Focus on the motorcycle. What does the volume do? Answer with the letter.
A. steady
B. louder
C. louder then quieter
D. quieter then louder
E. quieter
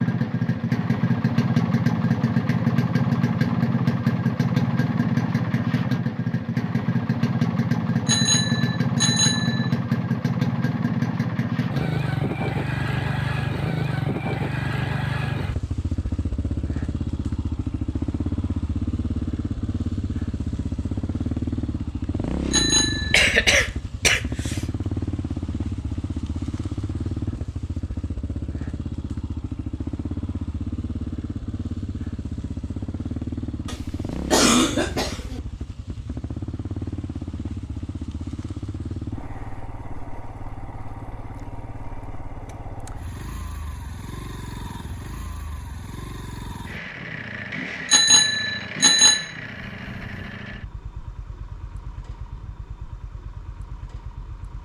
E.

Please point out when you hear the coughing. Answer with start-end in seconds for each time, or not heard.
23.1-24.6, 33.6-35.4.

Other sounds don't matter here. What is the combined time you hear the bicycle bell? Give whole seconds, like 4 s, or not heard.
4 s.